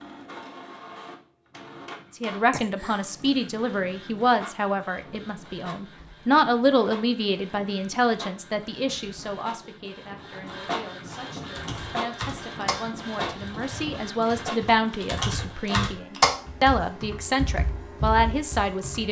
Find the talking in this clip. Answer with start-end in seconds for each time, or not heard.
2.1-19.0.